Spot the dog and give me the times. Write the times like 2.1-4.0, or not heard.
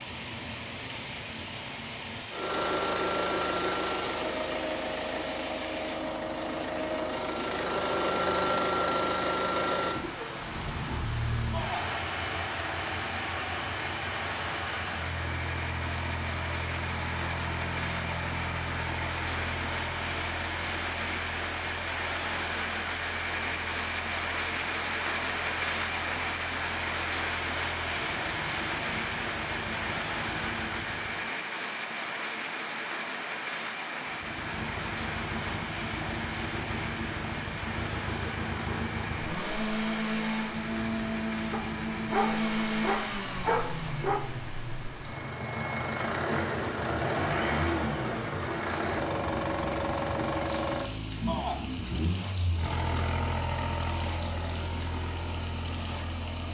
41.5-44.3.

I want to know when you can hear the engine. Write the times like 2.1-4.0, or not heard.
0.0-31.3, 34.0-56.4.